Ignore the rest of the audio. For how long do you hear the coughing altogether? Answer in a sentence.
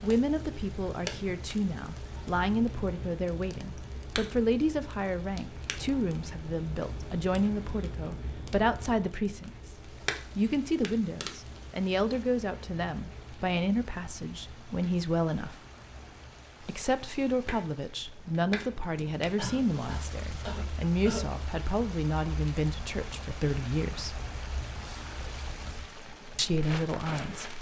You can hear the coughing for 2 seconds altogether.